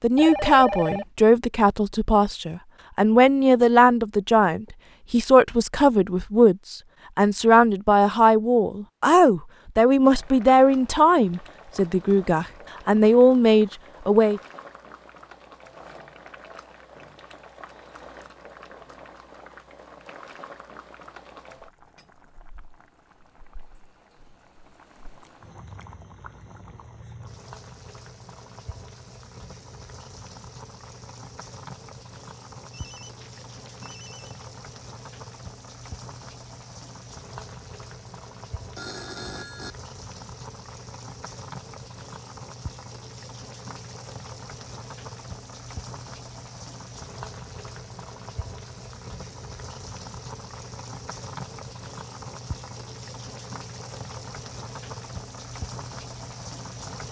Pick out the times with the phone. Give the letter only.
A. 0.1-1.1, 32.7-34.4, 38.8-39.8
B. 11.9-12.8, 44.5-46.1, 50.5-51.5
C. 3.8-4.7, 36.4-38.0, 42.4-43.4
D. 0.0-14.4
A.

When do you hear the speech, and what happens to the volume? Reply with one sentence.
The speech can be heard from 0.0 to 14.4 s, at a steady volume.